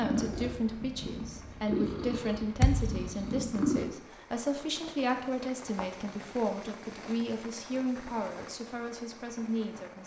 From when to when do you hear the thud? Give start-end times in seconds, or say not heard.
2.6-3.0.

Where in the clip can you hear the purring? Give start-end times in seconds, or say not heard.
0.0-3.9.